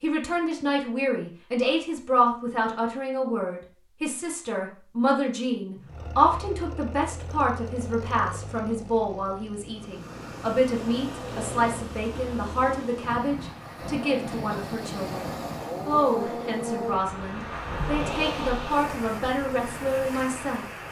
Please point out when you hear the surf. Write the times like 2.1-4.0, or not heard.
9.7-20.8.